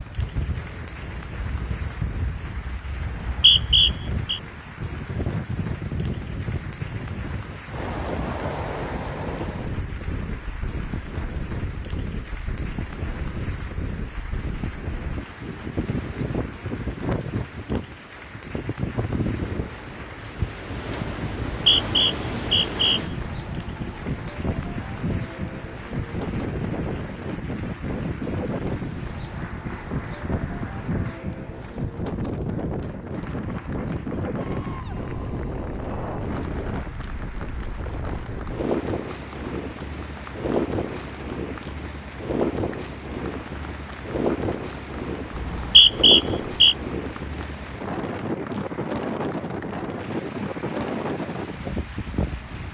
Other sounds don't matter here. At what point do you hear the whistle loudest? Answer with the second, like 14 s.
46 s.